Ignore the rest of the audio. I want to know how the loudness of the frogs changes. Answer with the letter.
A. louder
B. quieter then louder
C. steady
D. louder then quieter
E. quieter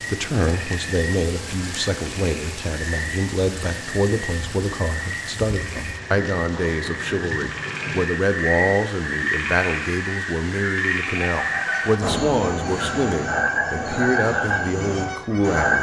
A.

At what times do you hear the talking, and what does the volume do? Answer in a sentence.
You can hear the talking from 0.1 to 15.7 s, at a steady volume.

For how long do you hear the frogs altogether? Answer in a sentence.
You can hear the frogs for 16 seconds altogether.